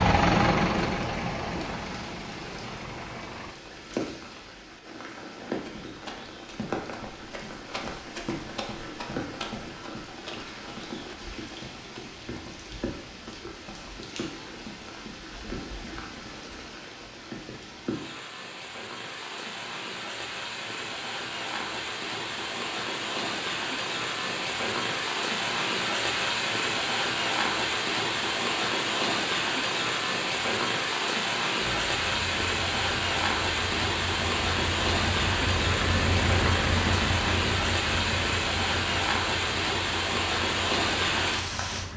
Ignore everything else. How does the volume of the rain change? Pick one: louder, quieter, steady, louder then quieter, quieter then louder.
louder.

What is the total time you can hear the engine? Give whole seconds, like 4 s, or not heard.
14 s.